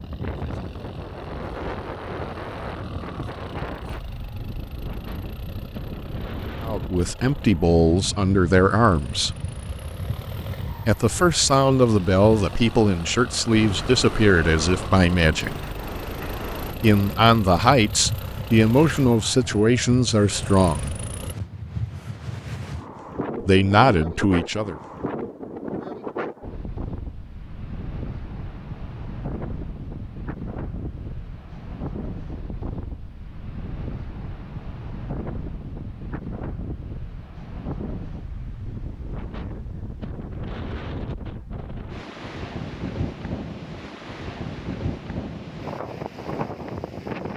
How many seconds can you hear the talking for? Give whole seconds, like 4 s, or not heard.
13 s.